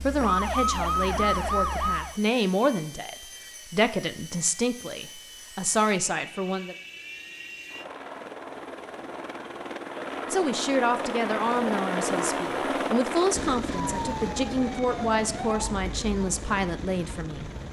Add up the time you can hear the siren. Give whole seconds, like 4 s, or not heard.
6 s.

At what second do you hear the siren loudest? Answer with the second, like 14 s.
1 s.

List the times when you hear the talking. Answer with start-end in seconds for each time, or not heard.
0.0-6.8, 10.3-17.5.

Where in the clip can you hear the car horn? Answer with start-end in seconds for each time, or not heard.
not heard.